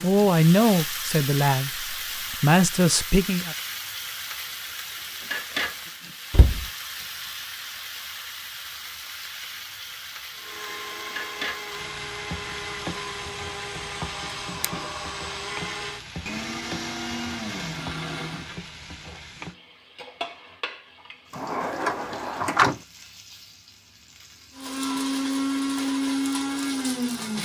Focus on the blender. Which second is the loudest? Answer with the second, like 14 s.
26 s.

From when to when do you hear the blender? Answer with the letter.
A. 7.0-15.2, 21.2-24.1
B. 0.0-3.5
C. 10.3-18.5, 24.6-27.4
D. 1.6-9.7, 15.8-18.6
C.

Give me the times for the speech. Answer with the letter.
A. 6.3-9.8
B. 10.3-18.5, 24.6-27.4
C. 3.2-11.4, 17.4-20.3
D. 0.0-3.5
D.